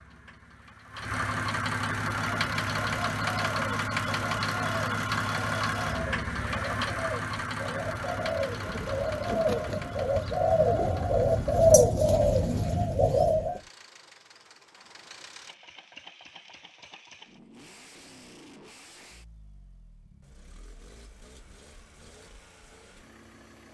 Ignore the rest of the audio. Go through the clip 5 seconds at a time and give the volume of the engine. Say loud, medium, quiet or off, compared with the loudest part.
loud, loud, quiet, quiet, quiet.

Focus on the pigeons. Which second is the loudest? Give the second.
12 s.